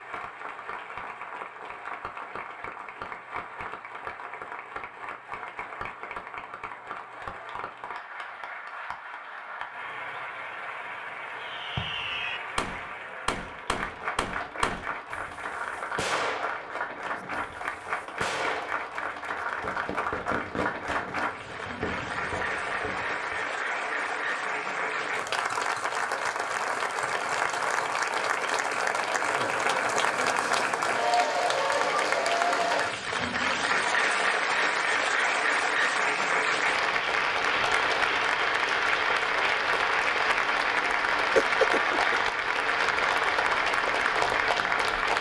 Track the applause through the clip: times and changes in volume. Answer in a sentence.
You can hear the applause from 0.0 to 45.1 s, getting louder.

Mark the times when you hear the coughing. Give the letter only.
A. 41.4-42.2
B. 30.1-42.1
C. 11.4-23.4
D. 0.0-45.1
A.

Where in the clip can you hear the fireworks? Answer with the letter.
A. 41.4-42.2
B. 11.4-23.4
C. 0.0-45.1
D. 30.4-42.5
B.